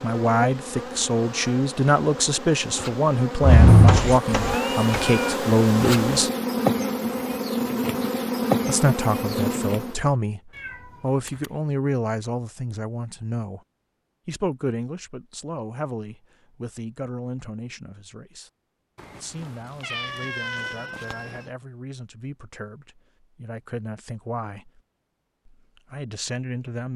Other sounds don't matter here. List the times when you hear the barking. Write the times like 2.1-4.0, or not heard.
not heard.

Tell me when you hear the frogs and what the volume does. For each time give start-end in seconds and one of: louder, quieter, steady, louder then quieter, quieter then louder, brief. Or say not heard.
not heard.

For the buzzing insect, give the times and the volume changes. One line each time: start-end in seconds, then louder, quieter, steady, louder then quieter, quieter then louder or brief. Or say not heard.
0.0-10.1 louder.